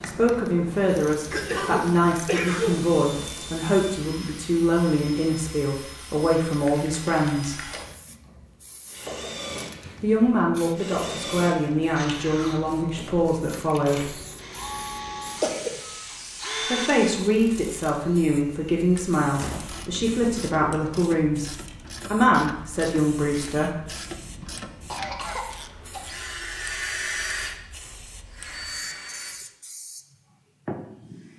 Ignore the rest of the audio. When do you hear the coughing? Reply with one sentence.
You can hear the coughing from 1.3 to 2.9 s, from 14.2 to 15.8 s and from 24.9 to 26.1 s.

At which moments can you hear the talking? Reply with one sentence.
The talking can be heard from 0.0 to 7.7 s, from 10.0 to 14.1 s, from 16.6 to 21.5 s and from 22.1 to 23.7 s.